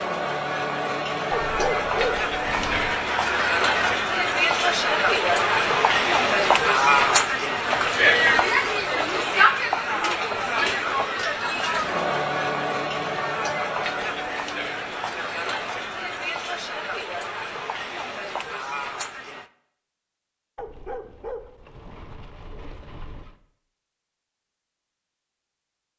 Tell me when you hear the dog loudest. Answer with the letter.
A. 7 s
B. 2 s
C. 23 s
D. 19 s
B.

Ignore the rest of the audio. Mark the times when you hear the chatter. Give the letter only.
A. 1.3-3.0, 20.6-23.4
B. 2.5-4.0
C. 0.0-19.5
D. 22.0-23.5
C.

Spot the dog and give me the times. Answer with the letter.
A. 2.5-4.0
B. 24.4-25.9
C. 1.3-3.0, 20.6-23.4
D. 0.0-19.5
C.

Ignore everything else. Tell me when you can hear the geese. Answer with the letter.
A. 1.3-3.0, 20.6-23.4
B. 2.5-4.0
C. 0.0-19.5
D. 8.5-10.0
B.